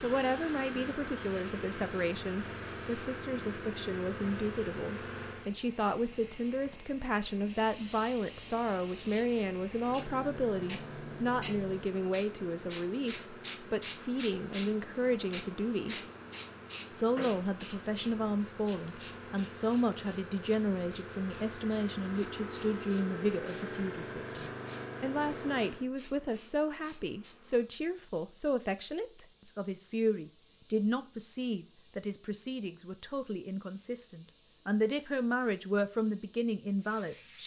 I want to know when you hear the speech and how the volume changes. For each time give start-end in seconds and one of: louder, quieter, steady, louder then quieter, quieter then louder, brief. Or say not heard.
0.0-15.9 steady
16.9-37.4 steady.